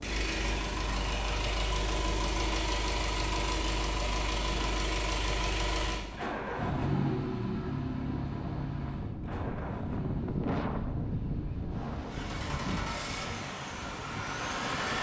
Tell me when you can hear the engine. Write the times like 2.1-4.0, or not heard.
0.0-14.9.